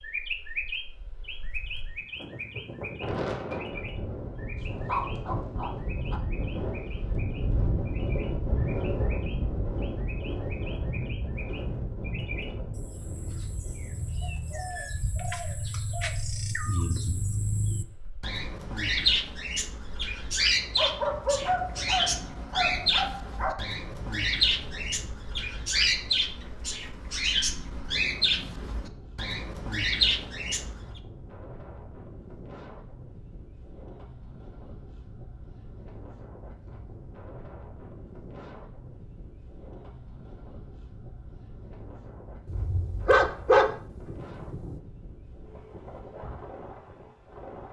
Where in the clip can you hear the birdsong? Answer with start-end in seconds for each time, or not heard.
0.0-31.0.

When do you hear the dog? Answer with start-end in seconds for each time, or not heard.
4.6-6.2, 20.8-23.6, 42.5-44.8.